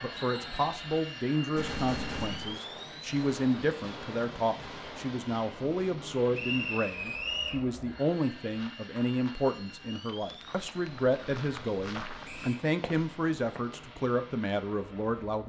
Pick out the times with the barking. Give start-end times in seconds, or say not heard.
not heard.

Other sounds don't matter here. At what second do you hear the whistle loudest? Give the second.
7 s.